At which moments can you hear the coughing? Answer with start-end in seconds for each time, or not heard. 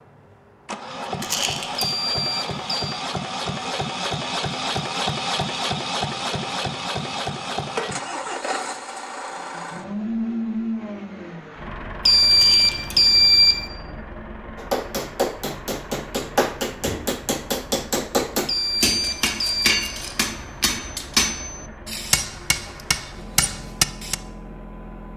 not heard.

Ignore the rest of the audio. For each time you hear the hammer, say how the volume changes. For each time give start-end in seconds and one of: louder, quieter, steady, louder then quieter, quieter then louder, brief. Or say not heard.
14.6-24.1 steady.